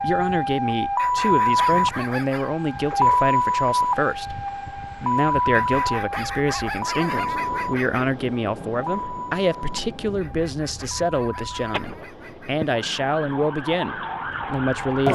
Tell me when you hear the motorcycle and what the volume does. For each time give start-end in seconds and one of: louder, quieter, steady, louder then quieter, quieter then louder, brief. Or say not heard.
not heard.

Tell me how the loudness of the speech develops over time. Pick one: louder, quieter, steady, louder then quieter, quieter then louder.
steady.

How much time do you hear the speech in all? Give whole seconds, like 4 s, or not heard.
15 s.